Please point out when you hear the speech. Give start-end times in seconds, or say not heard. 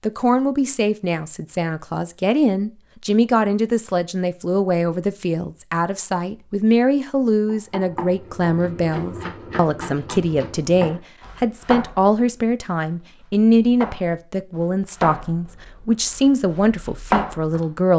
0.0-17.9.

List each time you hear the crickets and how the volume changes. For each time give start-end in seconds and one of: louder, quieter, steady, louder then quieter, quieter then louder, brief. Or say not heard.
not heard.